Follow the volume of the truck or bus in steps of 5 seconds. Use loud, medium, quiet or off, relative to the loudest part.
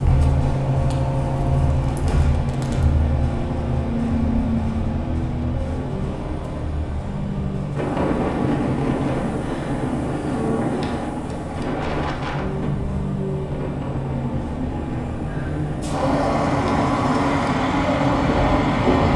loud, medium, medium, loud.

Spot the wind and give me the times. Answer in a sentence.
The wind can be heard from 7.8 to 19.1 s.